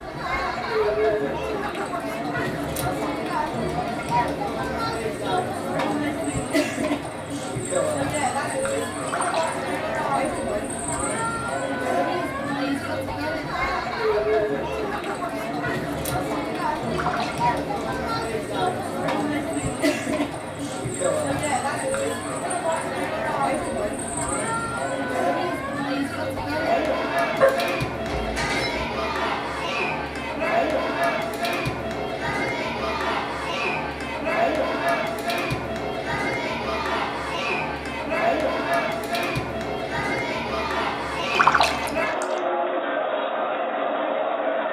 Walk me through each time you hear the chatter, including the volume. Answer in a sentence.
You can hear the chatter from 0.0 to 44.6 s, at a steady volume.